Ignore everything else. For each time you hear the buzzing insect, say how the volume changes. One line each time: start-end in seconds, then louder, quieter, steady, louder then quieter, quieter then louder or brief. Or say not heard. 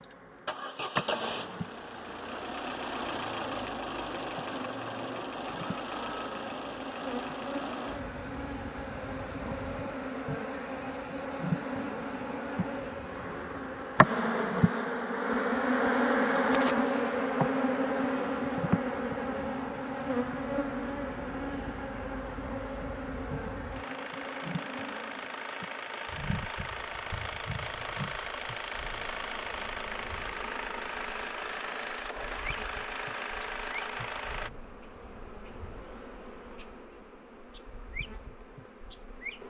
0.0-39.4 louder then quieter.